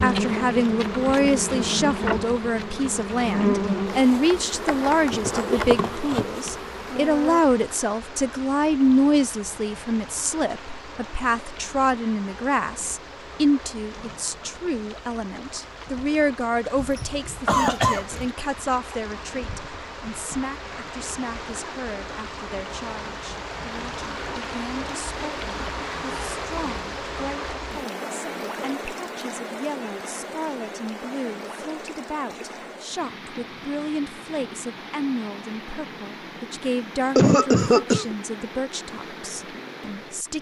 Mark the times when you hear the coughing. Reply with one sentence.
You can hear the coughing from 16.8 to 18.3 s and from 37.1 to 38.1 s.